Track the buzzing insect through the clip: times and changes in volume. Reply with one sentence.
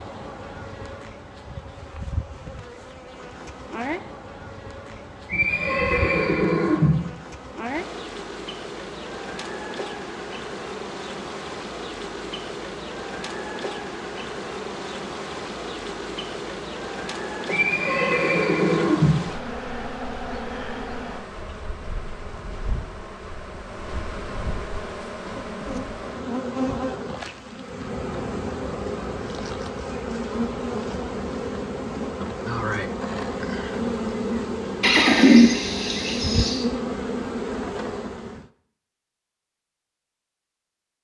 The buzzing insect can be heard from 0.0 to 38.5 s, getting louder.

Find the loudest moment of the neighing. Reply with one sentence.
The volume of the neighing peaks at 35 seconds.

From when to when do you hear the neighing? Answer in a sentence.
The neighing can be heard from 5.2 to 7.0 s, from 17.4 to 19.1 s and from 34.8 to 36.6 s.